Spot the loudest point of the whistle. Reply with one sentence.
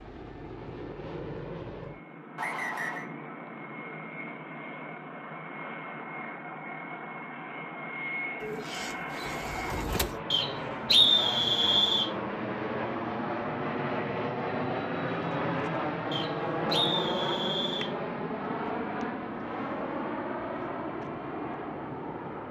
The volume of the whistle peaks at 11 seconds.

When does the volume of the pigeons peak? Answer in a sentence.
The loudest moment of the pigeons is at 10 seconds.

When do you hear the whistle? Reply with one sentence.
The whistle can be heard from 2.4 to 3.0 s, from 10.3 to 12.1 s and from 16.1 to 17.9 s.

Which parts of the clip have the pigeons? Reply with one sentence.
You can hear the pigeons from 8.4 to 10.2 s.